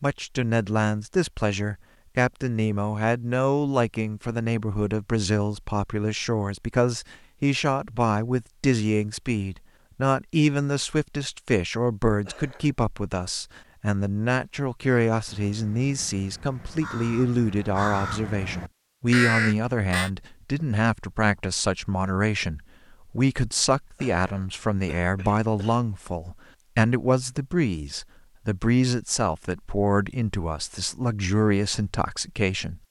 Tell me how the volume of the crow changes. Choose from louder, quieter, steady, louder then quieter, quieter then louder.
louder.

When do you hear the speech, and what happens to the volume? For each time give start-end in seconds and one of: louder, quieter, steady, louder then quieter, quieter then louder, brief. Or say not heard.
0.0-32.8 steady.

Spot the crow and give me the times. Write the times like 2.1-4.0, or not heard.
15.1-20.1.